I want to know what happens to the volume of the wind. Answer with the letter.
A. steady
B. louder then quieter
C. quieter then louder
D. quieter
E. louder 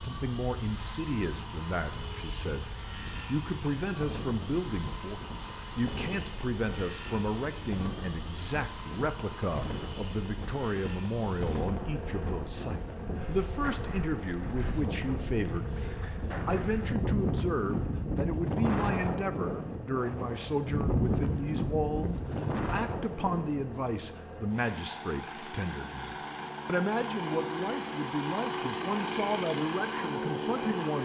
E.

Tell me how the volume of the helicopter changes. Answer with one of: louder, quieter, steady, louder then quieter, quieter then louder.
quieter then louder.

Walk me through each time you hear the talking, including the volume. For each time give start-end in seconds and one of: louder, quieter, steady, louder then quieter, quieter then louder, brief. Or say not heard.
0.0-31.0 steady.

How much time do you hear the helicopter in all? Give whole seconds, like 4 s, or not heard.
31 s.